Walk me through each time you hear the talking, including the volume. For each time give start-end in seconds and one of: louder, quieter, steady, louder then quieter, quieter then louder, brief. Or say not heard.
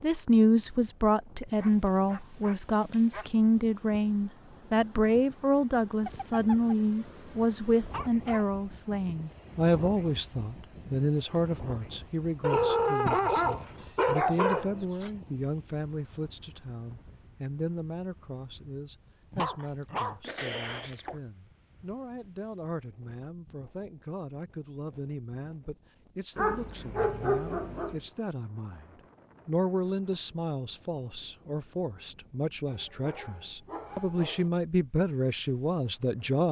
0.0-36.4 quieter then louder.